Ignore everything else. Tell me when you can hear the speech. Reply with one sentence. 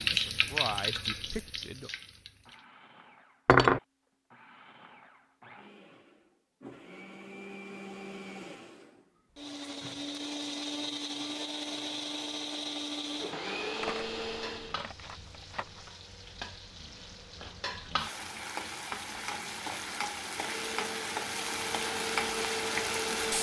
The speech can be heard from 0.1 to 1.9 s.